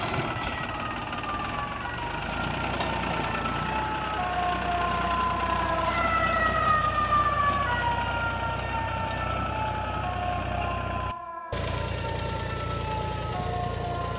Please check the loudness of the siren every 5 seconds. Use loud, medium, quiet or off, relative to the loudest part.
medium, loud, medium.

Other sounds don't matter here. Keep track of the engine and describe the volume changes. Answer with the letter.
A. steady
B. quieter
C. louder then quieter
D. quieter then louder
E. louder
A.